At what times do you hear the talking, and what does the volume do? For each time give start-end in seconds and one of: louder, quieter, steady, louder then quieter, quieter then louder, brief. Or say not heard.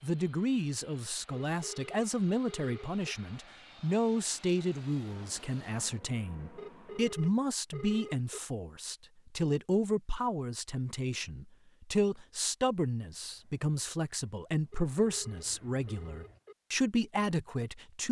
0.0-18.0 steady.